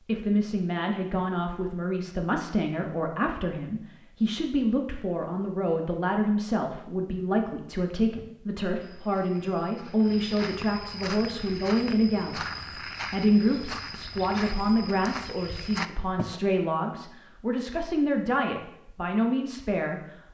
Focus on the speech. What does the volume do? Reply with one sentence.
The loudness of the speech stays about the same.